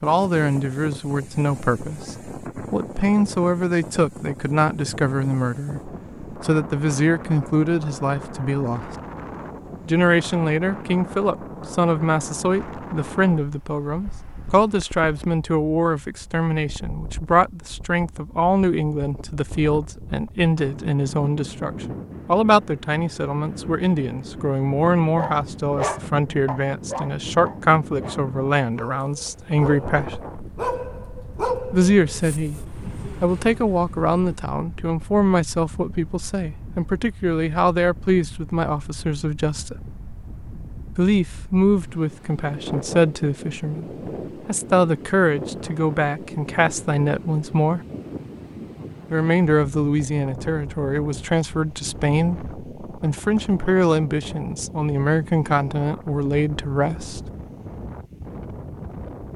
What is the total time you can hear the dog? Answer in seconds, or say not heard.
9 s.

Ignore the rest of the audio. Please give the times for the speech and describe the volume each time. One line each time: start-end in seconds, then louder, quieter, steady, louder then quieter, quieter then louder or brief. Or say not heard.
0.0-8.9 steady
9.8-30.2 steady
31.7-39.8 steady
41.0-47.8 steady
49.1-57.3 steady.